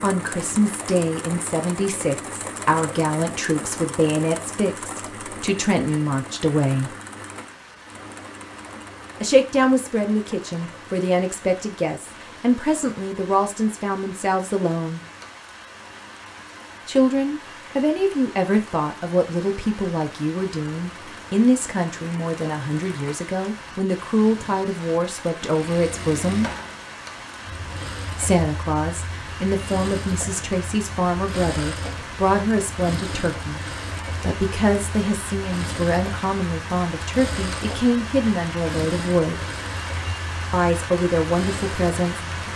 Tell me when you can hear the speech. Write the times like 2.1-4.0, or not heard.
0.0-7.0, 9.2-15.0, 16.9-26.5, 28.1-33.6, 34.2-39.5, 40.5-42.5.